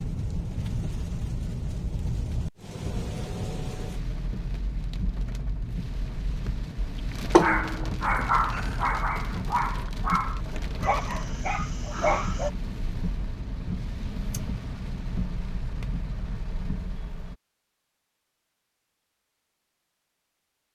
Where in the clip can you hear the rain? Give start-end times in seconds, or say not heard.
0.0-17.4.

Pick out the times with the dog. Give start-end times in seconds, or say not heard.
7.3-12.5.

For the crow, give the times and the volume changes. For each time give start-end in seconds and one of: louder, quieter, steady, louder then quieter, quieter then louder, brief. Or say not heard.
not heard.